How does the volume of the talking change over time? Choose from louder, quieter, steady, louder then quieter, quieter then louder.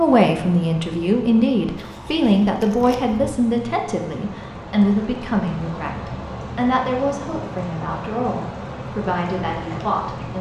quieter.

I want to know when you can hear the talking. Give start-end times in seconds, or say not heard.
0.0-10.3.